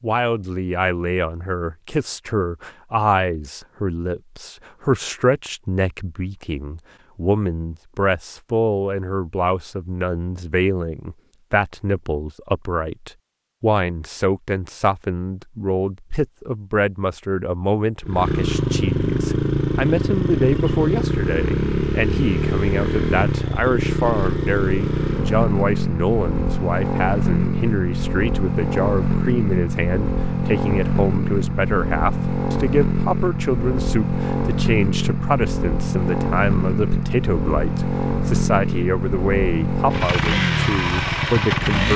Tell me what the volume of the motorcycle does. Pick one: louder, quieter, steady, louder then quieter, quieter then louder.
steady.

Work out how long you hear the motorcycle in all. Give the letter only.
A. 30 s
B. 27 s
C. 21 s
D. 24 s
D.